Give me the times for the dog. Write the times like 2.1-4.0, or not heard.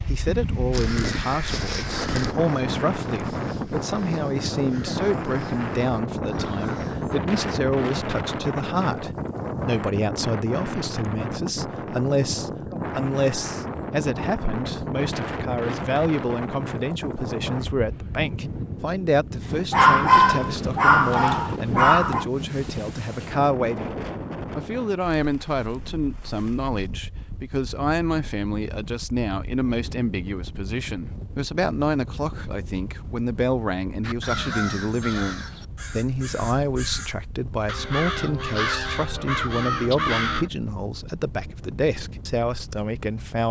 19.7-22.2.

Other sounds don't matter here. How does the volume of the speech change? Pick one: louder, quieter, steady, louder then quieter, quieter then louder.
steady.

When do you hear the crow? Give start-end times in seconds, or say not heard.
0.7-7.2, 34.0-40.5.